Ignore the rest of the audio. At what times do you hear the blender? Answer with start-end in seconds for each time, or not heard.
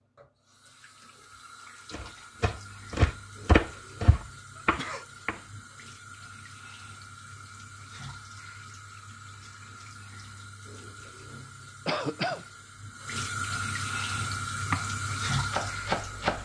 not heard.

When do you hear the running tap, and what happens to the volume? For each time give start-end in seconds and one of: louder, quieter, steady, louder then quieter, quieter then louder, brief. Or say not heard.
0.0-16.4 louder.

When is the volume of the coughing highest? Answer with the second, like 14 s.
12 s.